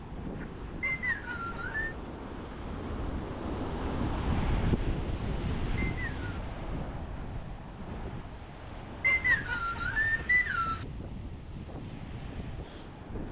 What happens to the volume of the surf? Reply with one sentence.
The volume of the surf goes up, then down.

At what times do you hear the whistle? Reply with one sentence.
The whistle can be heard from 0.8 to 1.9 s, from 5.8 to 6.4 s and from 9.0 to 10.8 s.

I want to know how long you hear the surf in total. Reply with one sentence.
The surf can be heard for 13 seconds in total.